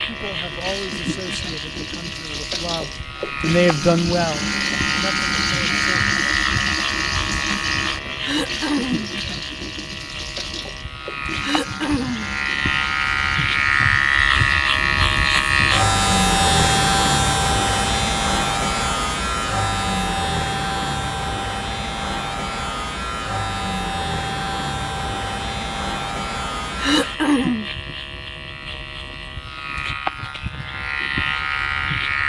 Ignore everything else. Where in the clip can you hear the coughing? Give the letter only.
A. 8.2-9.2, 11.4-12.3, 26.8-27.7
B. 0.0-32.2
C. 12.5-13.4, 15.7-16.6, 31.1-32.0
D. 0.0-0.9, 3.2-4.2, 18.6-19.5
A.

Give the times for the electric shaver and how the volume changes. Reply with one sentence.
The electric shaver can be heard from 0.0 to 32.2 s, getting louder then quieter.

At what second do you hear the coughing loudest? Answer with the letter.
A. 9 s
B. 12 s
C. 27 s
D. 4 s
C.